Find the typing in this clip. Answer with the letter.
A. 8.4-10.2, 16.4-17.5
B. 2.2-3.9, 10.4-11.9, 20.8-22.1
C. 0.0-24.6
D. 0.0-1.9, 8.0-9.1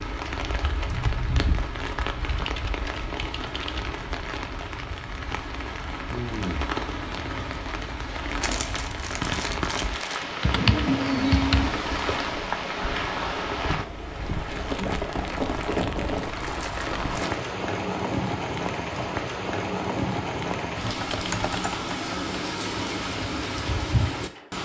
B.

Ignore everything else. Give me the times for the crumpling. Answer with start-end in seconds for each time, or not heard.
8.4-10.2, 16.4-17.5.